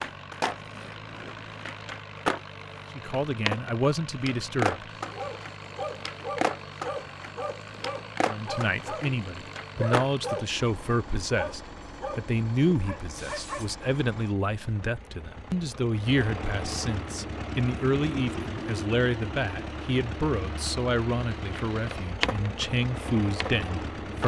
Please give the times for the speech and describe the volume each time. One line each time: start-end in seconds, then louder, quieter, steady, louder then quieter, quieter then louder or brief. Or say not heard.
3.0-4.8 brief
8.2-24.2 steady.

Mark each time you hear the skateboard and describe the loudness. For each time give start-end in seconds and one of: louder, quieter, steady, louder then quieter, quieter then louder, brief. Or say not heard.
0.0-10.1 louder then quieter
21.4-24.2 brief.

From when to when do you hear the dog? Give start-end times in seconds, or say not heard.
5.0-13.7.